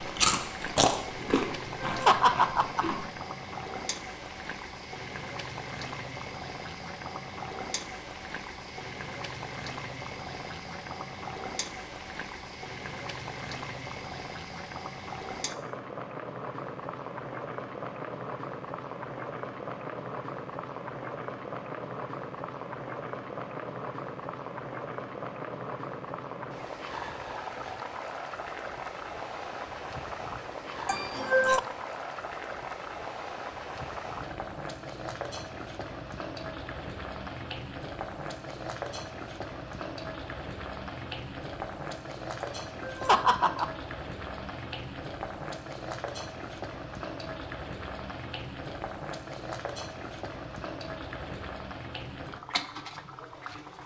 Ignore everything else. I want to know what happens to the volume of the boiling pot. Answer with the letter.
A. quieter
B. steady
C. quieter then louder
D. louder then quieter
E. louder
B.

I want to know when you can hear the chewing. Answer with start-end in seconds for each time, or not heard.
0.0-3.0.